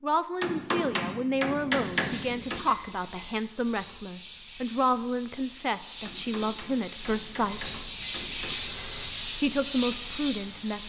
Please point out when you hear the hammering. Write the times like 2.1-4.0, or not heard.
0.4-2.6, 6.0-8.6.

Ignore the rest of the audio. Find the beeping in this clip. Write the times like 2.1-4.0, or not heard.
2.1-3.3, 7.5-9.1.